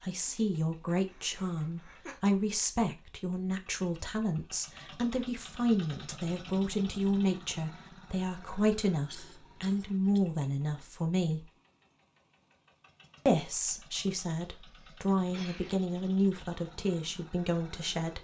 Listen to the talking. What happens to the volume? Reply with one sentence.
The volume of the talking stays about the same.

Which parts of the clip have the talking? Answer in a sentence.
You can hear the talking from 0.0 to 11.5 s and from 13.2 to 18.1 s.